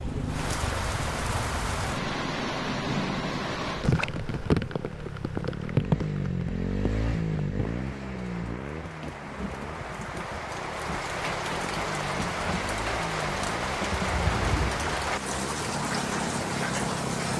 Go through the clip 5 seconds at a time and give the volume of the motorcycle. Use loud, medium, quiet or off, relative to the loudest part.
medium, loud, medium, loud.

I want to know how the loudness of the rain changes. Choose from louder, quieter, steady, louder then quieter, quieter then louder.
quieter then louder.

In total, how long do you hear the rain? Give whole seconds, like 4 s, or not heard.
17 s.